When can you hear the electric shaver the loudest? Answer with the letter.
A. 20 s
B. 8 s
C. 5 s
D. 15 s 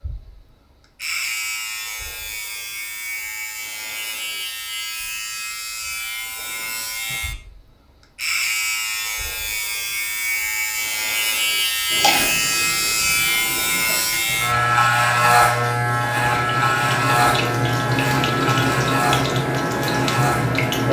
D.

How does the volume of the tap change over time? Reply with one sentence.
The volume of the tap goes up.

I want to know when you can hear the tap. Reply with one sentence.
The tap can be heard from 11.9 to 20.8 s.